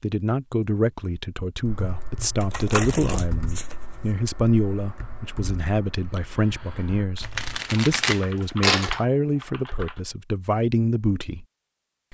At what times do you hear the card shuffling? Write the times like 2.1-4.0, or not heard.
2.4-3.8, 7.2-9.0.